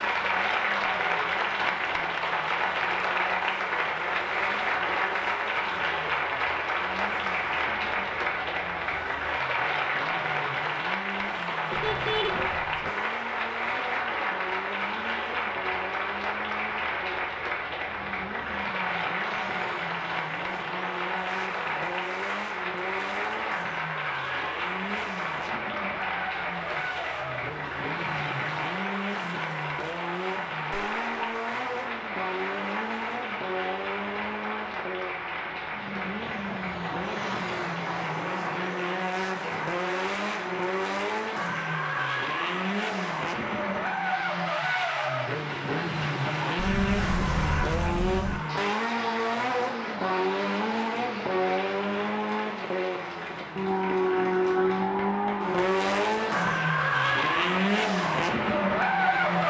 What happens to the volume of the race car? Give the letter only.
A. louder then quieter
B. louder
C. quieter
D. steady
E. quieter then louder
B.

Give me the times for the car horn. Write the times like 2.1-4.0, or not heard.
11.7-12.9, 30.9-31.4, 46.5-48.4.